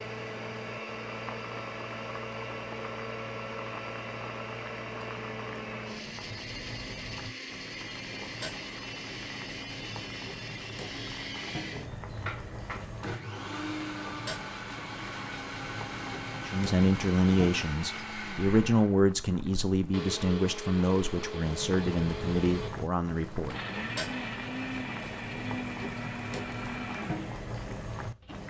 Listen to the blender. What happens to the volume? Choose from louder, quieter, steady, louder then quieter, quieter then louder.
steady.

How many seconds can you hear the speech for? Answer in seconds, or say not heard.
7 s.